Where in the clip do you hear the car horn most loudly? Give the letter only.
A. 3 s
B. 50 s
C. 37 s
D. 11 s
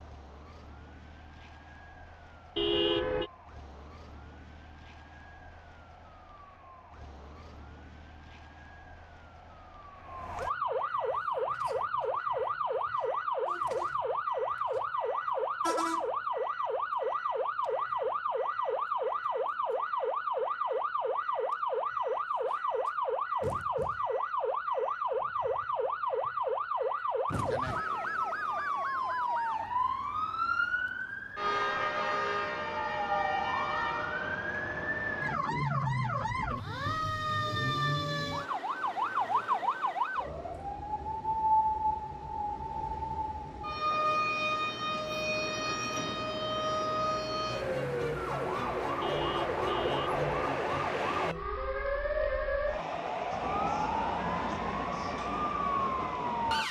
A.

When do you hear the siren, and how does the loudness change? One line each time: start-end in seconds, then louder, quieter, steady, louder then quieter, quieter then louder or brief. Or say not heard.
0.0-56.6 louder.